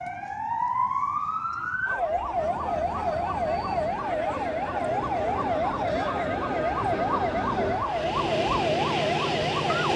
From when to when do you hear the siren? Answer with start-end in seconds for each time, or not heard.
0.0-9.9.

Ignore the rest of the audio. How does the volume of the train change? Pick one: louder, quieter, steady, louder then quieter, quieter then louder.
louder.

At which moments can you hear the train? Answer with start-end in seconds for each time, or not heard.
2.3-9.9.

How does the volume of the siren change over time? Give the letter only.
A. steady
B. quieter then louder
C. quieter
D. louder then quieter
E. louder
A.